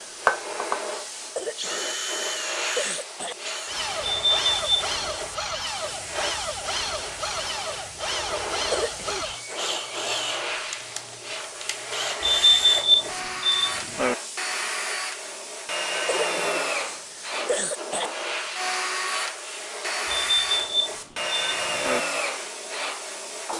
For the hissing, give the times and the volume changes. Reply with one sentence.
The hissing can be heard from 0.0 to 23.5 s, at a steady volume.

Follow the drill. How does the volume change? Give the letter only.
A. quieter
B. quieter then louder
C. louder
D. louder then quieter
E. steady
E.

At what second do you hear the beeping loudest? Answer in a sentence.
The loudest moment of the beeping is at 13 seconds.